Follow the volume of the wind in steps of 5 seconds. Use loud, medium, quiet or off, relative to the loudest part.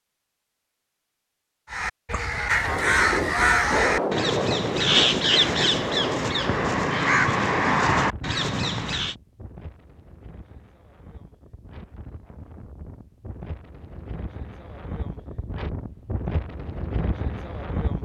loud, medium, quiet, medium.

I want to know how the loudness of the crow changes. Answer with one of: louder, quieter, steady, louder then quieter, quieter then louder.
steady.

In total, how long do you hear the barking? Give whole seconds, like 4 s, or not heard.
not heard.